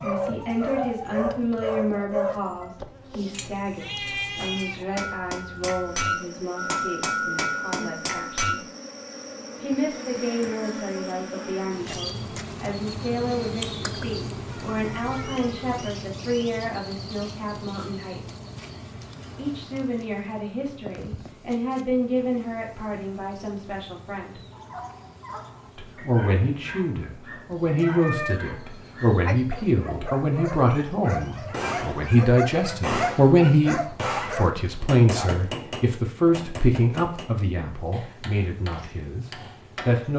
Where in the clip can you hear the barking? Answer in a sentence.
You can hear the barking from 0.0 to 2.9 s and from 24.5 to 35.3 s.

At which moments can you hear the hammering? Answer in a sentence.
You can hear the hammering from 4.9 to 8.6 s and from 31.4 to 40.1 s.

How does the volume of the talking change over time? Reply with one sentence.
The volume of the talking goes up.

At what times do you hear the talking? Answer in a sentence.
The talking can be heard from 0.0 to 8.6 s, from 9.6 to 18.2 s, from 19.4 to 24.4 s and from 25.8 to 40.1 s.